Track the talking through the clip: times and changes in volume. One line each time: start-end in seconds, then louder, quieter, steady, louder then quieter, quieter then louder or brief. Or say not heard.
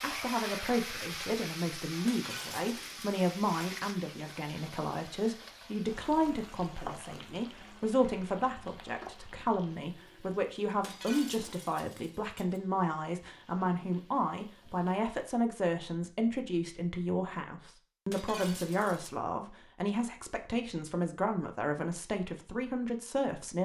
0.0-23.6 steady.